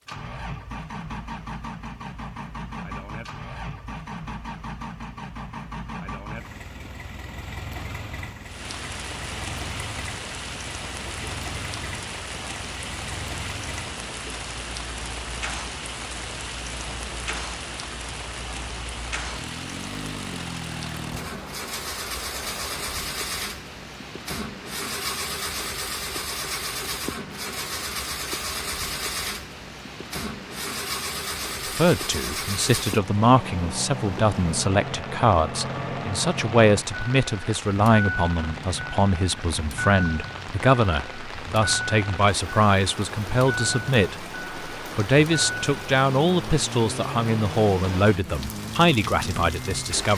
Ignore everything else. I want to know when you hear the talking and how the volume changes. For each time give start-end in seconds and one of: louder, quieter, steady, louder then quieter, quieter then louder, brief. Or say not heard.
31.6-50.1 steady.